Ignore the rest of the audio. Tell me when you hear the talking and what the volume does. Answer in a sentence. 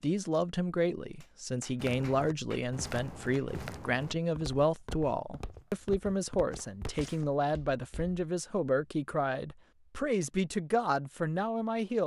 You can hear the talking from 0.0 to 12.0 s, at a steady volume.